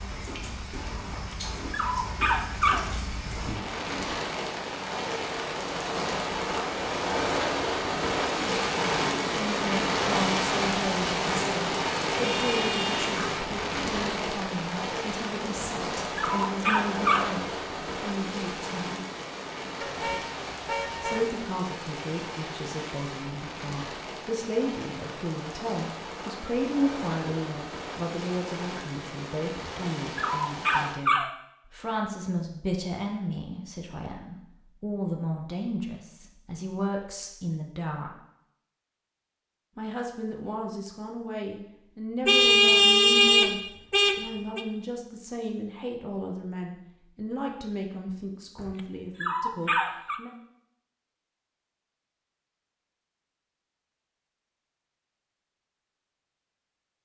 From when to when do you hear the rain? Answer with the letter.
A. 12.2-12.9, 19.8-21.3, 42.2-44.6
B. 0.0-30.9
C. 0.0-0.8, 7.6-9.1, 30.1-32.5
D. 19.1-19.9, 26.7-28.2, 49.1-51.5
B.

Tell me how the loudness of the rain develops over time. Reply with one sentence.
The loudness of the rain goes up, then down.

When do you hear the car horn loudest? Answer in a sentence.
The loudest moment of the car horn is at 43 seconds.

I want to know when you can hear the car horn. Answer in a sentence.
You can hear the car horn from 12.2 to 12.9 s, from 19.8 to 21.3 s and from 42.2 to 44.6 s.